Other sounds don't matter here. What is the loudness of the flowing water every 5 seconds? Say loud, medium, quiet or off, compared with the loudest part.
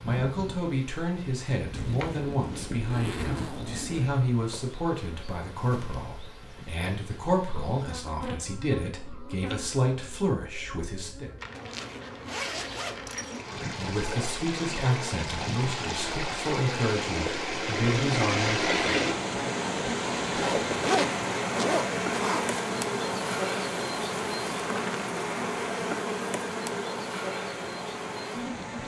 off, off, medium, loud, loud, medium.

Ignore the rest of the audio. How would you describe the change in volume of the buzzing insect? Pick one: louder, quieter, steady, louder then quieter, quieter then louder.
louder.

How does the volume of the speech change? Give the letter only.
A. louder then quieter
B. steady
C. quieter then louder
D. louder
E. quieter
B.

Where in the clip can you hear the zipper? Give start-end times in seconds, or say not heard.
1.7-4.2, 11.6-13.4, 20.2-22.6.